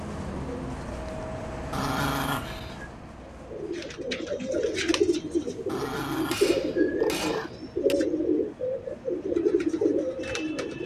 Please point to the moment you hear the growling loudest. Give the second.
2 s.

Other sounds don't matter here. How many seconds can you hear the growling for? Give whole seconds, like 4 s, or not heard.
3 s.